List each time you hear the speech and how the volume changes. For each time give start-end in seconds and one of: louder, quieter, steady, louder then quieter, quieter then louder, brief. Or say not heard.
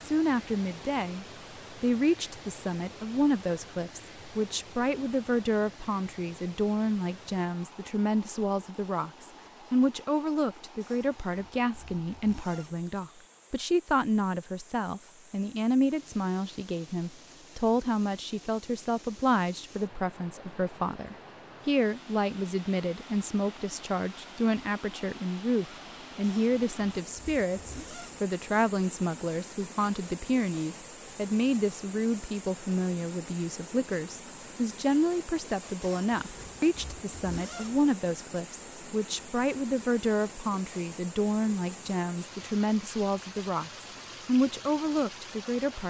0.0-45.8 steady.